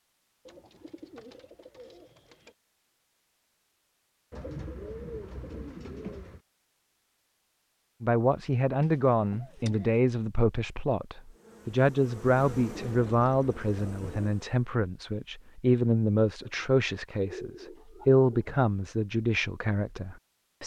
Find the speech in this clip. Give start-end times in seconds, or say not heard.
8.0-20.6.